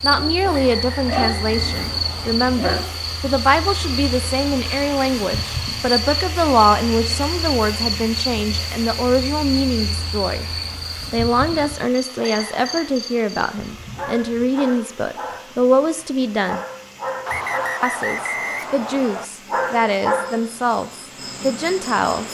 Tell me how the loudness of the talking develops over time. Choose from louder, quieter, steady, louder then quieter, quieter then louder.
steady.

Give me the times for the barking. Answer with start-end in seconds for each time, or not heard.
0.0-3.1.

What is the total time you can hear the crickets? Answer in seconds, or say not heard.
22 s.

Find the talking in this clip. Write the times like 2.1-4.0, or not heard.
0.0-10.4, 11.1-16.6, 17.8-22.2.